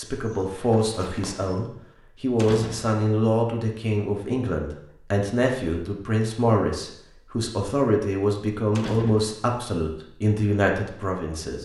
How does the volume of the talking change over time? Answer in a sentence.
The loudness of the talking stays about the same.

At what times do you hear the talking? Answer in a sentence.
You can hear the talking from 0.0 to 11.6 s.